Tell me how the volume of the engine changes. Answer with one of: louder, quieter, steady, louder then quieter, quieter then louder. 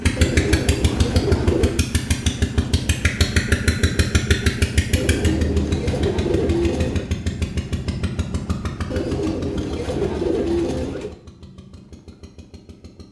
quieter.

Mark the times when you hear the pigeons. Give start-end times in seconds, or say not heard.
0.1-1.8, 4.9-7.1, 8.9-11.2.